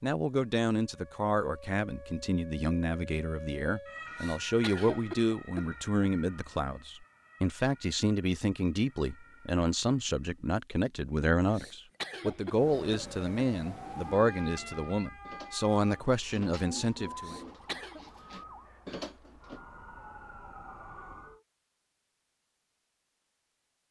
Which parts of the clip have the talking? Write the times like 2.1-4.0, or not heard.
0.0-17.4.